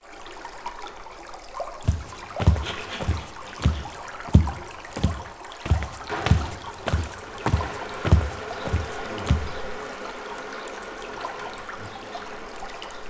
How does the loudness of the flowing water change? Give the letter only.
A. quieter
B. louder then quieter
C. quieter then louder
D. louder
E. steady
E.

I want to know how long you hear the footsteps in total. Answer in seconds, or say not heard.
8 s.